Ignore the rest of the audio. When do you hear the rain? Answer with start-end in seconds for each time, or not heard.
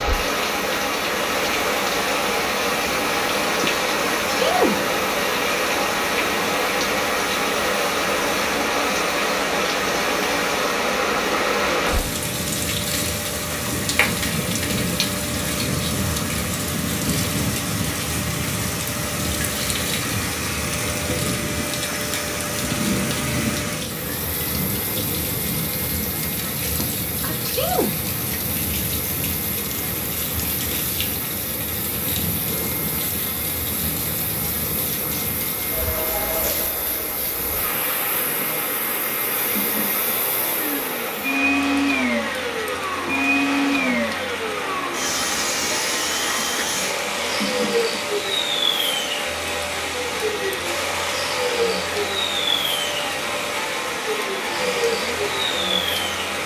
0.0-56.4.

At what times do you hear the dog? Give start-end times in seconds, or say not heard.
not heard.